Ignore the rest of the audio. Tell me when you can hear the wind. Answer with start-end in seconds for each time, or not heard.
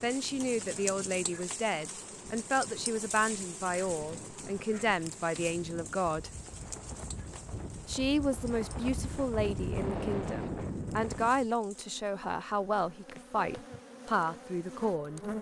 0.0-11.4.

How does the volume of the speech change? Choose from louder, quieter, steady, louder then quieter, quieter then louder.
steady.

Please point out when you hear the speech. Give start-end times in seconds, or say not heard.
0.0-6.3, 7.8-15.2.